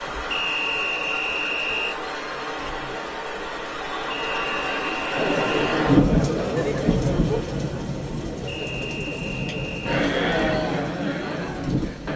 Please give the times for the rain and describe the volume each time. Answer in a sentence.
You can hear the rain from 0.0 to 12.1 s, getting louder then quieter.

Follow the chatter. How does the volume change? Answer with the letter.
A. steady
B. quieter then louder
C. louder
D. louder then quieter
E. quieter
B.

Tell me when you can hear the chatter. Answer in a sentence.
The chatter can be heard from 5.2 to 12.1 s.